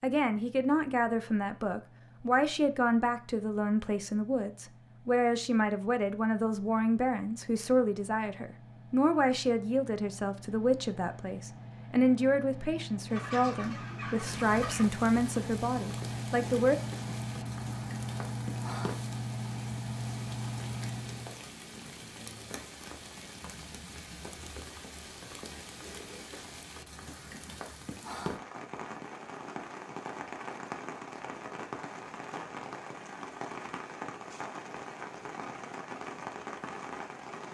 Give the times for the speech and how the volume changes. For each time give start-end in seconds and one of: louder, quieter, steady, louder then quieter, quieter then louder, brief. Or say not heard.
0.0-16.8 steady.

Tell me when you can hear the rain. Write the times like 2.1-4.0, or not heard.
14.2-37.4.